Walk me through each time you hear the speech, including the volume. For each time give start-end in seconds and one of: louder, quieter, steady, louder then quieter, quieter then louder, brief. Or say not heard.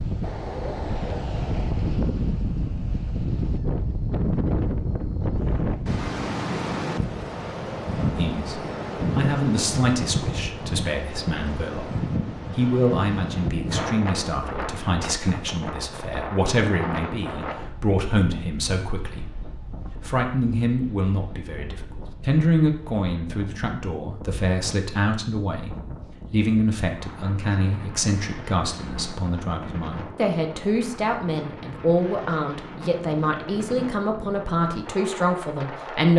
8.1-36.1 steady.